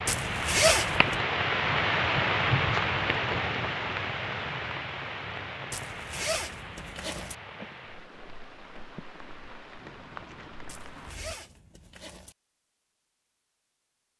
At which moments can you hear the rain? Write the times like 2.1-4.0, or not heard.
0.0-11.3.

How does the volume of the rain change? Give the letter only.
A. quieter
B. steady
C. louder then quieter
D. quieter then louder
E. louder
A.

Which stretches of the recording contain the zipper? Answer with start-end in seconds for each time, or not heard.
0.1-1.2, 5.7-7.3, 10.7-12.3.